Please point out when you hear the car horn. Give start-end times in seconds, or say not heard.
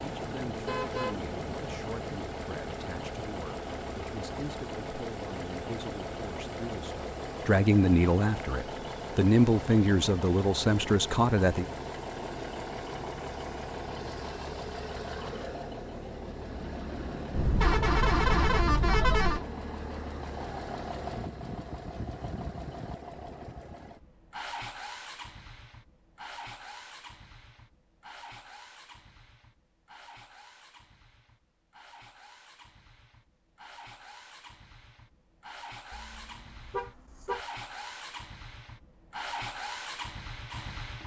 0.3-2.2, 17.3-19.4, 35.9-37.5.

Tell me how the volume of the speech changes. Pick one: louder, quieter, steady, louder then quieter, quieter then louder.
louder.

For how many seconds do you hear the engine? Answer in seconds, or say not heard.
41 s.